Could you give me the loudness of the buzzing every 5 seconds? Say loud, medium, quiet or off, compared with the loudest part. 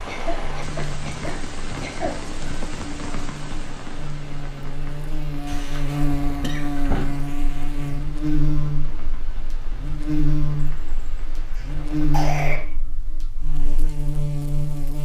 medium, loud, loud.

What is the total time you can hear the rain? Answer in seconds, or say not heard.
13 s.